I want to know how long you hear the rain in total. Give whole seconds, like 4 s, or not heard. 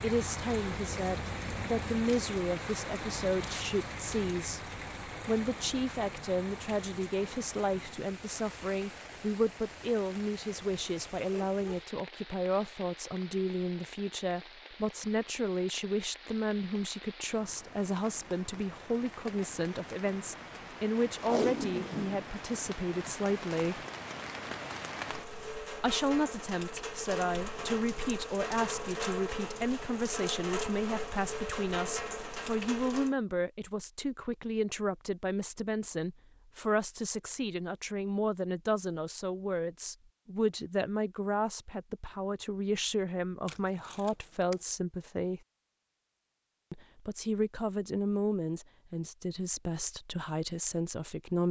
33 s.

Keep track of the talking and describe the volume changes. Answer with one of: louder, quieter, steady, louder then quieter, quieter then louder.
steady.